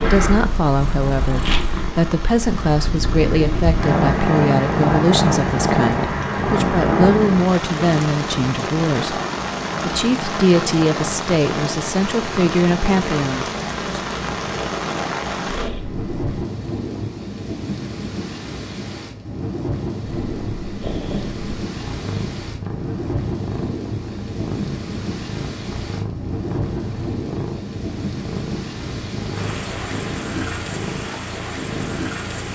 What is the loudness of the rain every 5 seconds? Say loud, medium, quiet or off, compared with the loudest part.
medium, loud, loud, loud, loud, loud, loud.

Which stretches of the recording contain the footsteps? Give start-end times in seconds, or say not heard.
not heard.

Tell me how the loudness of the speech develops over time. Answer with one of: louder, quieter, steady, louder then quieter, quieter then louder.
steady.